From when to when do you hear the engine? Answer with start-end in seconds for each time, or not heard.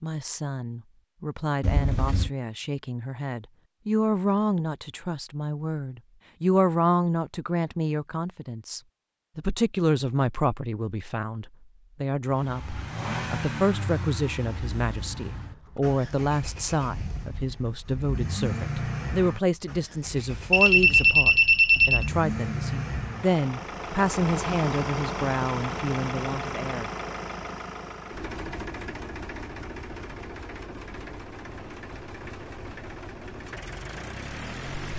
12.2-34.9.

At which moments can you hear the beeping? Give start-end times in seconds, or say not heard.
1.6-2.3, 20.5-22.1.